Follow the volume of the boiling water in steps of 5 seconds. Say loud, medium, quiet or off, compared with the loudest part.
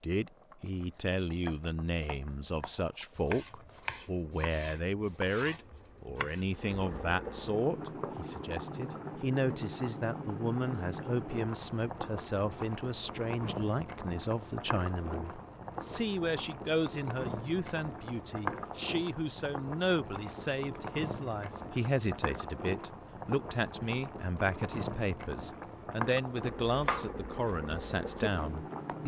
quiet, loud, loud, loud, loud, loud.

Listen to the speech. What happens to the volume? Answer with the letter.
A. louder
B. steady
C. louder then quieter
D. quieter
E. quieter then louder
B.